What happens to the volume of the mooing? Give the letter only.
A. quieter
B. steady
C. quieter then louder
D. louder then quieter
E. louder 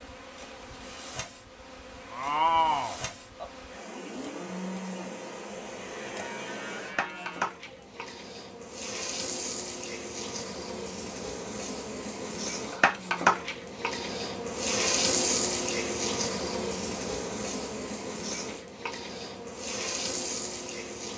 A.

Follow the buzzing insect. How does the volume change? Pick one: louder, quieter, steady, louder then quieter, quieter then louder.
louder then quieter.